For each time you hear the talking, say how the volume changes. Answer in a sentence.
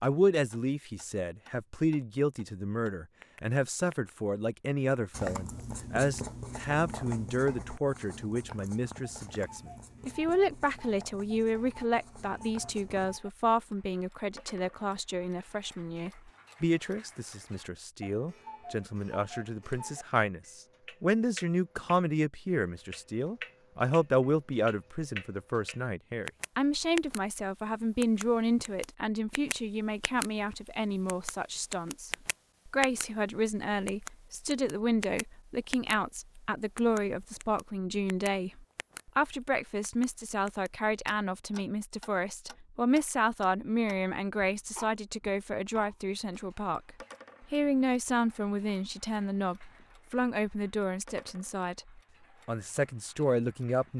The talking can be heard from 0.0 to 53.9 s, at a steady volume.